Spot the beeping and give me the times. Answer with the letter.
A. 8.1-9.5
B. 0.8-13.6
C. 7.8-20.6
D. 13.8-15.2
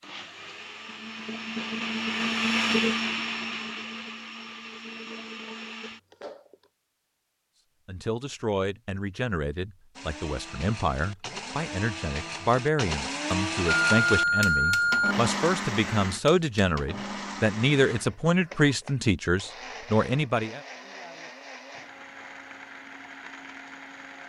D.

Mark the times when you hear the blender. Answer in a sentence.
You can hear the blender from 0.0 to 6.7 s and from 9.9 to 24.2 s.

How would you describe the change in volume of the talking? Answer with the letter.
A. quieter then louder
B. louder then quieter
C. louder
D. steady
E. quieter
C.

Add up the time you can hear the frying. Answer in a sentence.
You can't hear the frying here.